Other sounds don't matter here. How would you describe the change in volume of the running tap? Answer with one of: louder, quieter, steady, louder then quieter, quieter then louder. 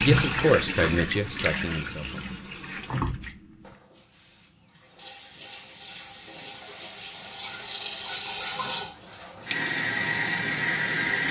quieter then louder.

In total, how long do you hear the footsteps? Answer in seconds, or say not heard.
not heard.